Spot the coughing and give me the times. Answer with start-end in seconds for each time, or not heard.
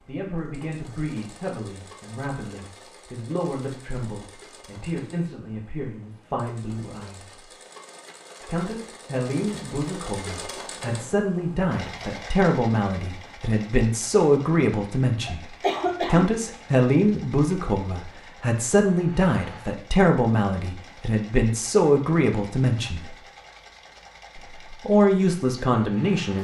15.2-16.3.